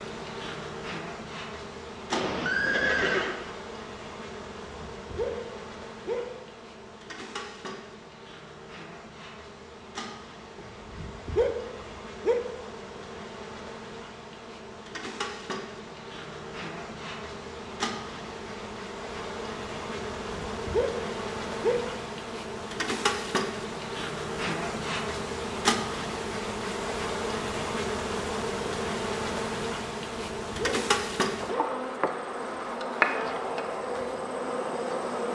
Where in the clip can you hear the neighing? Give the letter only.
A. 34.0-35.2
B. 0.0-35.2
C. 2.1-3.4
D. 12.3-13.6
C.